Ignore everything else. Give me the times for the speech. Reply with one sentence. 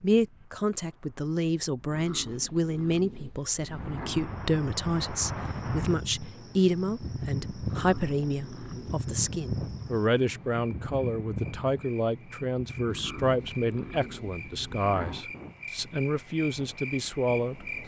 You can hear the speech from 0.0 to 17.8 s.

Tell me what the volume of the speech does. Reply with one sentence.
The loudness of the speech stays about the same.